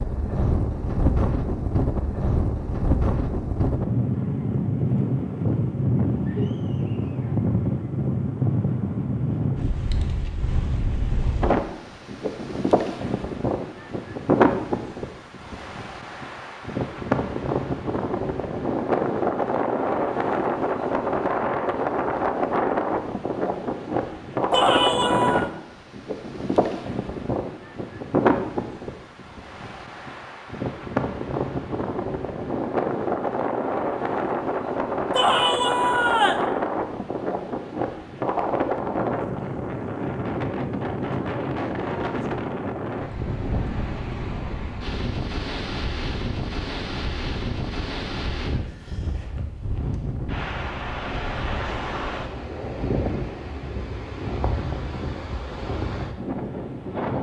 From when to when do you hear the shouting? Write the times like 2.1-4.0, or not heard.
24.5-25.5, 35.1-36.5.